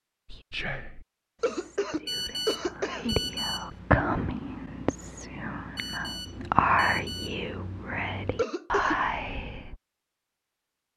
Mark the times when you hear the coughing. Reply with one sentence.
You can hear the coughing from 1.4 to 3.2 s and from 8.3 to 9.1 s.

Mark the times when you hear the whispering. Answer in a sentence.
The whispering can be heard from 0.3 to 9.8 s.